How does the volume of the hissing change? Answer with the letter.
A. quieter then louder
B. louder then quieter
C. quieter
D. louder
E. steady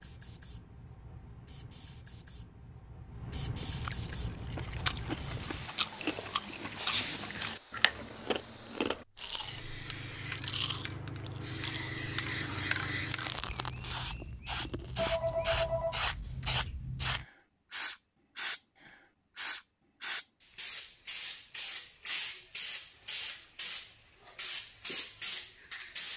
D.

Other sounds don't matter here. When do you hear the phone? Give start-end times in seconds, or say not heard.
14.9-16.5.